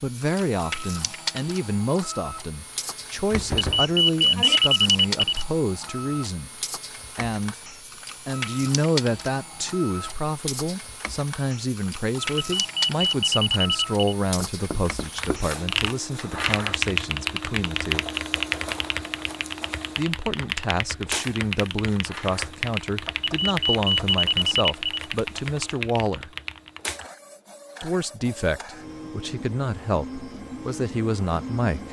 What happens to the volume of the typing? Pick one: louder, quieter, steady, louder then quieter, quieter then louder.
quieter.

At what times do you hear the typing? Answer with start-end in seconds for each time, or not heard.
15.2-27.1.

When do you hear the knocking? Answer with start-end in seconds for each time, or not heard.
3.3-4.6, 14.4-15.4, 23.1-24.1.